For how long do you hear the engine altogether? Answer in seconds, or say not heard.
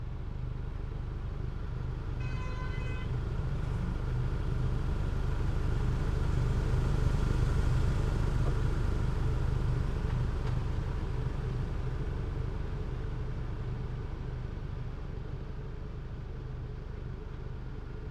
18 s.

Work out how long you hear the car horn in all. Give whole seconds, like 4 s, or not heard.
2 s.